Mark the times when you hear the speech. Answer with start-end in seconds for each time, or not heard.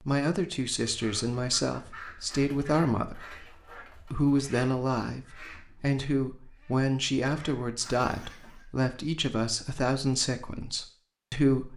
0.0-11.7.